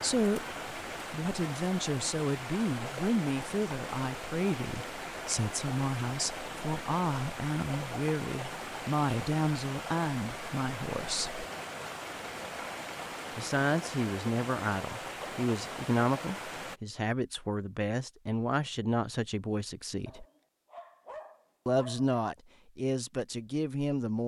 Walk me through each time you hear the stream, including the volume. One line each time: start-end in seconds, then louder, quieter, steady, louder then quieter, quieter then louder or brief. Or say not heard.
0.0-16.8 steady.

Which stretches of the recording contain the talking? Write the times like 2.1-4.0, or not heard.
0.0-11.4, 13.3-20.2, 21.6-24.2.